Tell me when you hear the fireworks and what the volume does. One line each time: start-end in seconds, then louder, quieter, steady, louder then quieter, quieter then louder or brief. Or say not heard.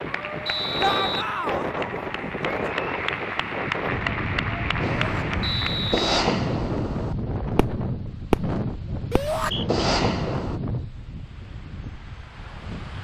4.8-10.6 quieter then louder.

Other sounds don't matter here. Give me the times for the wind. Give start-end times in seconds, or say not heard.
0.0-13.0.